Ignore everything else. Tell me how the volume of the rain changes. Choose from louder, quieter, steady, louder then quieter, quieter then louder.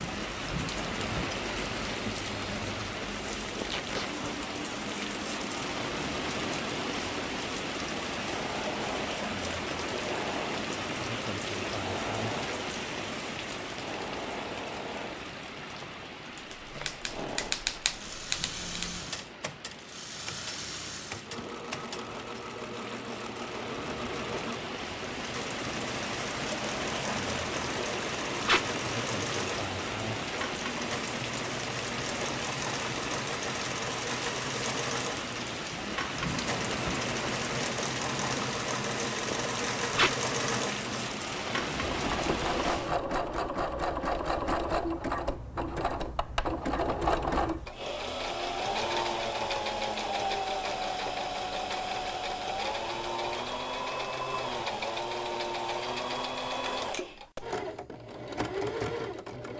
quieter then louder.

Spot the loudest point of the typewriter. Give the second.
18 s.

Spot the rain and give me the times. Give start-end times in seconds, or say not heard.
0.0-43.0.